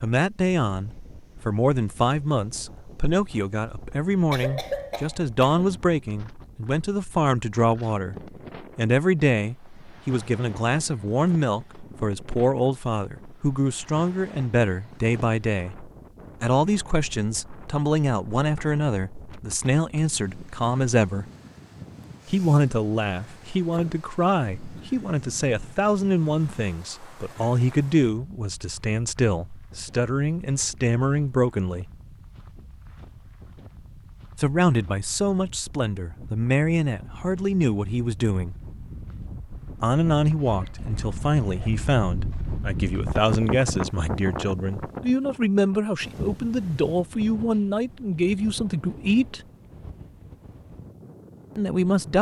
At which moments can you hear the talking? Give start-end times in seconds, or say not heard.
0.0-21.2, 22.2-31.9, 34.4-38.5, 39.8-49.4, 51.5-52.1.